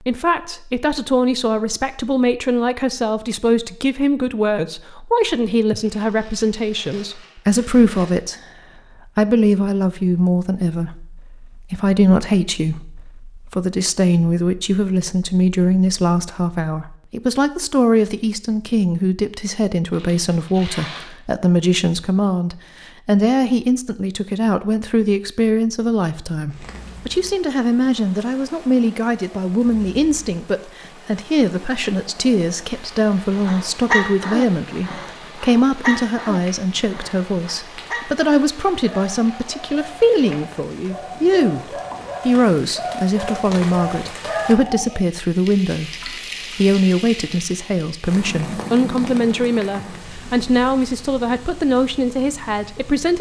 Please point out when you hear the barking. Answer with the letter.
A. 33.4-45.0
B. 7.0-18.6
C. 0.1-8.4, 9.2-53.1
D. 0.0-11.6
A.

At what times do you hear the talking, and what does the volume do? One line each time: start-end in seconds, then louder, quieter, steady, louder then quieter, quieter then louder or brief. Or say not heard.
0.1-8.4 steady
9.2-53.1 steady.